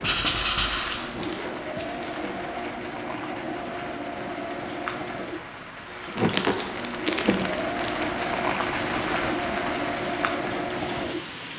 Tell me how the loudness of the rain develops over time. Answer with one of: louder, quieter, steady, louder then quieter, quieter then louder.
louder.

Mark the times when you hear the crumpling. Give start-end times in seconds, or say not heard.
1.0-2.5, 6.0-8.1.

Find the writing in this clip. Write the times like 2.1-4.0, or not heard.
0.0-1.9.